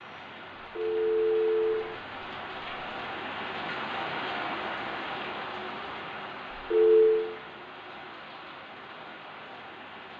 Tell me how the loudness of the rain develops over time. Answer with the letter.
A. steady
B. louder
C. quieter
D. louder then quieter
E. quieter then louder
D.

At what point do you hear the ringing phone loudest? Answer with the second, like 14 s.
7 s.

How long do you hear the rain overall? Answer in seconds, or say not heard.
10 s.